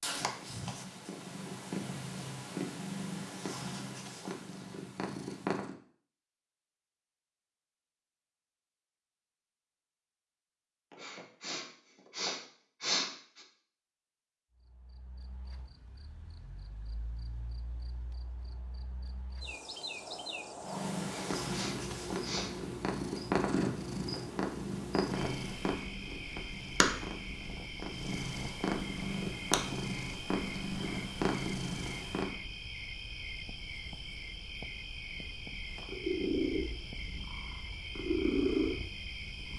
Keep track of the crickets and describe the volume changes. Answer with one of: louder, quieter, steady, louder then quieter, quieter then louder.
louder.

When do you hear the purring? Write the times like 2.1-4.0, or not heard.
0.0-5.8, 20.6-32.4, 35.8-39.5.